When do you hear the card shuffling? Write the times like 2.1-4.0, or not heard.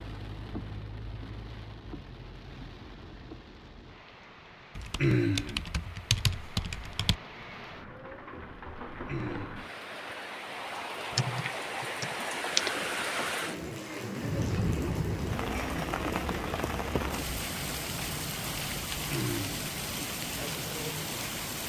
not heard.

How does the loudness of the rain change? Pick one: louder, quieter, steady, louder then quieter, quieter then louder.
louder.